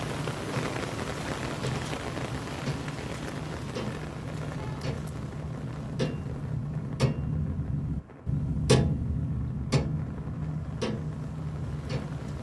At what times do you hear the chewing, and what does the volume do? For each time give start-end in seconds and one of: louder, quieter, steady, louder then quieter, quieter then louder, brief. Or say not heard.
not heard.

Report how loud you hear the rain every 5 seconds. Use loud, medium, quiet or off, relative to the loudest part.
loud, medium, medium.